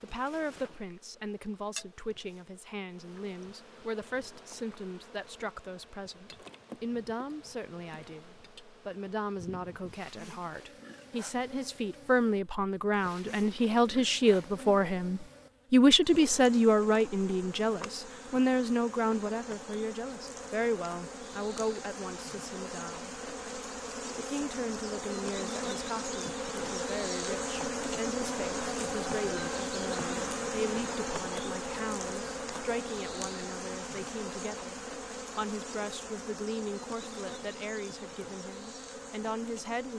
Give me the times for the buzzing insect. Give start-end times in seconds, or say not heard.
0.0-39.9.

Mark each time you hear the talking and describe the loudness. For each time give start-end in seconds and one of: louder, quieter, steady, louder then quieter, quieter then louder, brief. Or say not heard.
0.0-23.2 louder then quieter
24.1-39.9 steady.